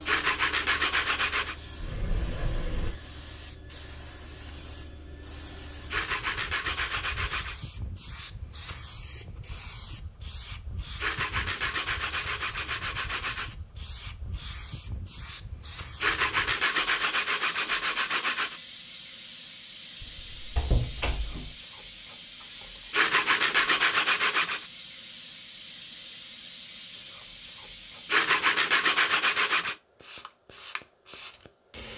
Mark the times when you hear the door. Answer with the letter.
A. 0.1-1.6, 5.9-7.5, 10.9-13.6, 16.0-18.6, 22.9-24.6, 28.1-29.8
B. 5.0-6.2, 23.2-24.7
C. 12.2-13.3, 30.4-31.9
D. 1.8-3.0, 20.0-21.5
D.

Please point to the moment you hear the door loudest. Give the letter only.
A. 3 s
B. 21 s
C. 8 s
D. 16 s
B.